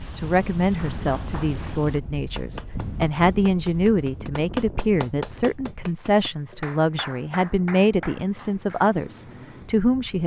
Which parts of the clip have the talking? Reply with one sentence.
You can hear the talking from 0.0 to 10.2 s.